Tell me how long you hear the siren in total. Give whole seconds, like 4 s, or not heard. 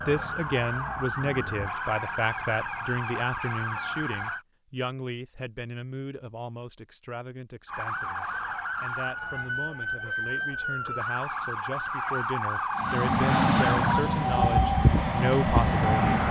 13 s.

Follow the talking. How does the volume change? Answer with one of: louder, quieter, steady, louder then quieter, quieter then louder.
quieter then louder.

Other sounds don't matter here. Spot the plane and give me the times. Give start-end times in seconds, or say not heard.
12.8-16.2.